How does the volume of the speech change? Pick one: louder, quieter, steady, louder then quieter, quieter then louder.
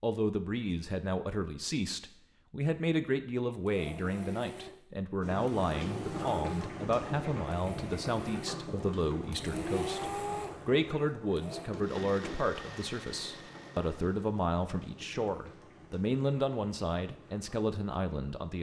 steady.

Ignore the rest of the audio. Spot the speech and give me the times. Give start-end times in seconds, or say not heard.
0.0-18.5.